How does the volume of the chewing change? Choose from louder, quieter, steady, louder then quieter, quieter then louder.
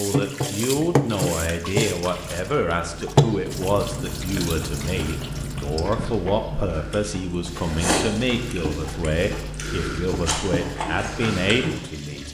louder.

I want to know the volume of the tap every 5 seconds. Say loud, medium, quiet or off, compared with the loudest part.
loud, medium, medium.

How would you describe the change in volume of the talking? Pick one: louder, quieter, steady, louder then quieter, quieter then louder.
steady.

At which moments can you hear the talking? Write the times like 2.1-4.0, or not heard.
0.0-12.2.